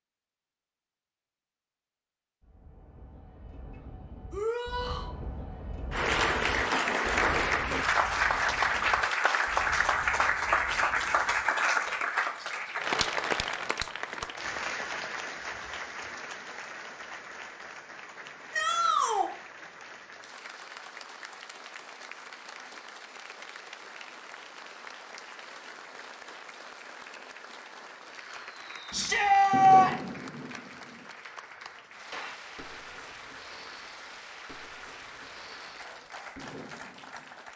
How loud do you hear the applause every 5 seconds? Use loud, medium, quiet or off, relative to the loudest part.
off, loud, loud, quiet, quiet, quiet, quiet, quiet.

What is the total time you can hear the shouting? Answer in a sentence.
The shouting can be heard for 3 seconds in total.